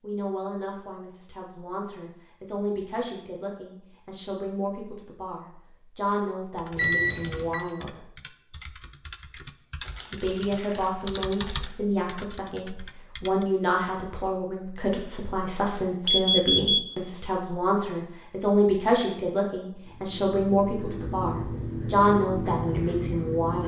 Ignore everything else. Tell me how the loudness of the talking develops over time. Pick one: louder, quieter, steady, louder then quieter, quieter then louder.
louder.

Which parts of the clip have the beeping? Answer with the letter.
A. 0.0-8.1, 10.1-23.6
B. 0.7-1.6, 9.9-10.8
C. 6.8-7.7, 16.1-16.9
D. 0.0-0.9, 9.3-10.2
C.